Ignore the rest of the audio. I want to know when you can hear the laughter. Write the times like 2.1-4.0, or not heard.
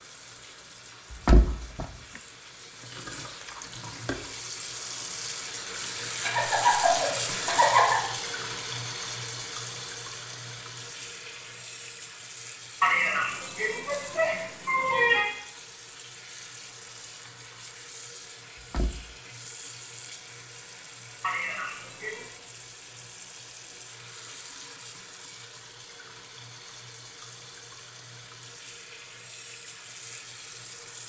6.2-8.1, 12.8-15.2, 21.2-22.2.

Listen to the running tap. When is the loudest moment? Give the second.
7 s.